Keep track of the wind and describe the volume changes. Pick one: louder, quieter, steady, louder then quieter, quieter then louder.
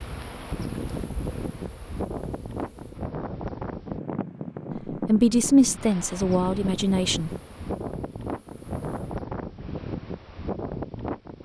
steady.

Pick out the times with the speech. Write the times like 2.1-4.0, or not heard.
4.8-7.3.